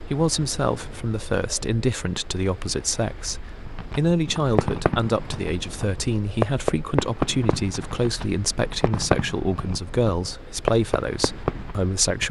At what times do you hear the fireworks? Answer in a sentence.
You can hear the fireworks from 3.6 to 11.8 s.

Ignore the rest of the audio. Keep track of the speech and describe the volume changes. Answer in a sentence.
The loudness of the speech stays about the same.